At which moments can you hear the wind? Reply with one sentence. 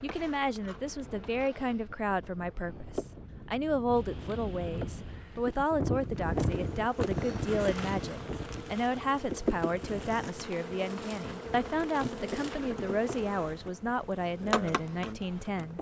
The wind can be heard from 0.0 to 15.7 s.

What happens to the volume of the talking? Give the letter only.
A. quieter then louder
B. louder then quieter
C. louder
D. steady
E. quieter
D.